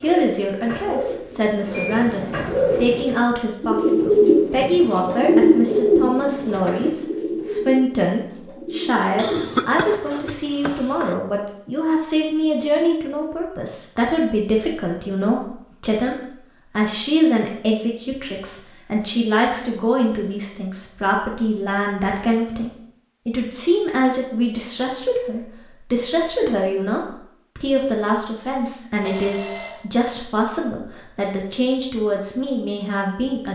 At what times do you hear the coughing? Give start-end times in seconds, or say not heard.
9.2-11.2.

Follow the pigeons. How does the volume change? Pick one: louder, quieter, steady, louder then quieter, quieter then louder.
louder then quieter.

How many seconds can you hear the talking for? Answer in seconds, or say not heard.
33 s.